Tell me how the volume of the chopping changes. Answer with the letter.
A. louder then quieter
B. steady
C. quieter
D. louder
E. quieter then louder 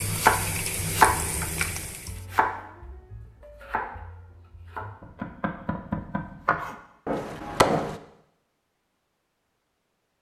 E.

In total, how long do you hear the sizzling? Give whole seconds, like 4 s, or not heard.
2 s.